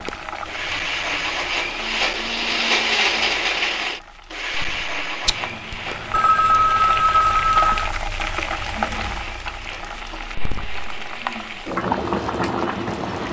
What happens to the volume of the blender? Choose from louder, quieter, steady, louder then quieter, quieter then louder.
quieter.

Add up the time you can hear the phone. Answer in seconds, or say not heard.
3 s.